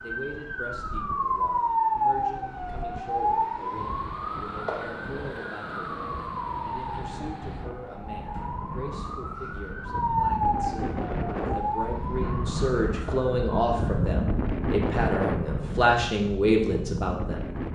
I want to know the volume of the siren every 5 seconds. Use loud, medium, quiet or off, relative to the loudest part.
loud, medium, loud, off.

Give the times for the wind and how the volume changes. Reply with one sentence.
The wind can be heard from 0.0 to 17.7 s, getting louder.